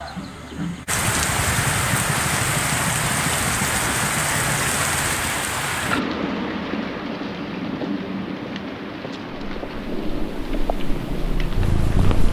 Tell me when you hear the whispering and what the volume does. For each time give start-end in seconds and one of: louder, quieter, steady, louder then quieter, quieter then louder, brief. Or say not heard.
not heard.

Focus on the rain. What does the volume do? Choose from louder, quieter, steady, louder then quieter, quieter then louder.
quieter.